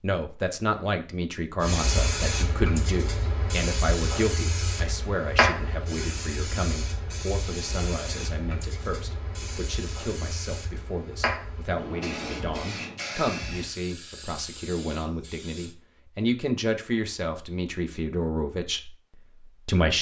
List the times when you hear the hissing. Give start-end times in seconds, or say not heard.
1.6-15.8.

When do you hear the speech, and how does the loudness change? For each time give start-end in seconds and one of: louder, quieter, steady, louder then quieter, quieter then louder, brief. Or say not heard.
0.0-19.9 quieter then louder.